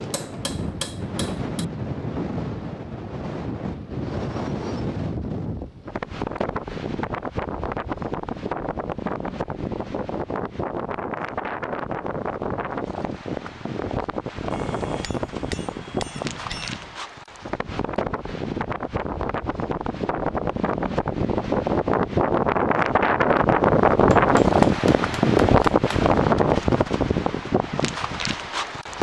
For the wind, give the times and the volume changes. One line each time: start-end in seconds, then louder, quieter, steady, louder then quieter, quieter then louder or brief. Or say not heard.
0.0-28.9 louder.